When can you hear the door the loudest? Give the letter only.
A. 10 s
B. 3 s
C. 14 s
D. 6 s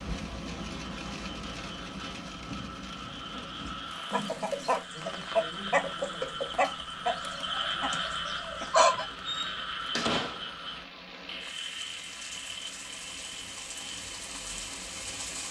A.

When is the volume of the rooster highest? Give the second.
9 s.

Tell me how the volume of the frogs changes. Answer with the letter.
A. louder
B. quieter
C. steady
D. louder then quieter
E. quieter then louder
D.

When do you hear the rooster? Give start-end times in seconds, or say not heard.
4.1-9.1.